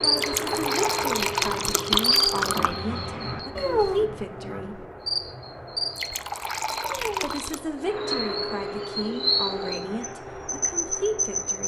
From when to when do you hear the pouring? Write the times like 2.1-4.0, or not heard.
0.1-2.8, 6.0-7.6.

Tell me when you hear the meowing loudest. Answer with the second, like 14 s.
4 s.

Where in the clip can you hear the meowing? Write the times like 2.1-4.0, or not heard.
3.5-4.0, 6.8-7.3.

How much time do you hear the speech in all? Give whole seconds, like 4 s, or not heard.
9 s.